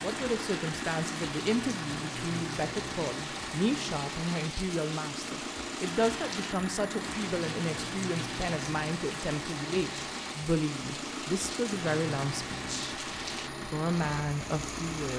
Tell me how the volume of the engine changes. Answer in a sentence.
The loudness of the engine stays about the same.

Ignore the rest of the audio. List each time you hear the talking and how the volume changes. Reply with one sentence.
The talking can be heard from 0.0 to 15.1 s, at a steady volume.